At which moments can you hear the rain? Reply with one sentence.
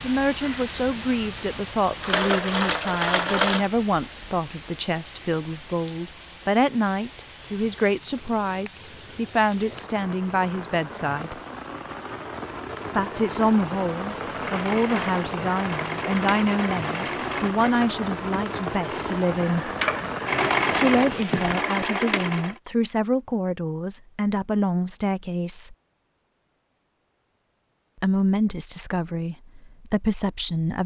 The rain can be heard from 0.0 to 21.6 s.